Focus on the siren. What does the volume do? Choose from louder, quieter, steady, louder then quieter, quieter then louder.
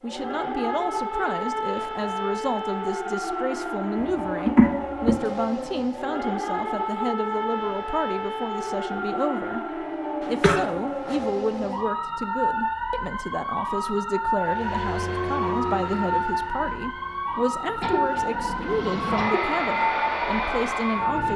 steady.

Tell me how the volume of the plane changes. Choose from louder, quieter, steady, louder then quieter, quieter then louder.
quieter then louder.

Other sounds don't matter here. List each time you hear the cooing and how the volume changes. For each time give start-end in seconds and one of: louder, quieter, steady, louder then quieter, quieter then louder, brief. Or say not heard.
not heard.